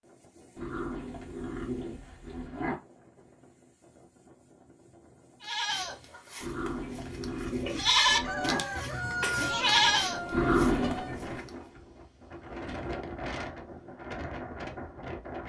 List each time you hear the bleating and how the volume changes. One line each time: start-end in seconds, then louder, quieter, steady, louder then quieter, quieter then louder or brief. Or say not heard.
5.4-11.5 louder then quieter.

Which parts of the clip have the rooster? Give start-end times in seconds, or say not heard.
8.1-11.2.